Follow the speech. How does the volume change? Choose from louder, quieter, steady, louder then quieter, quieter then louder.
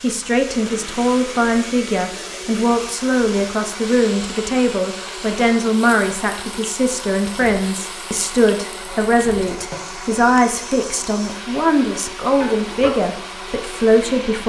steady.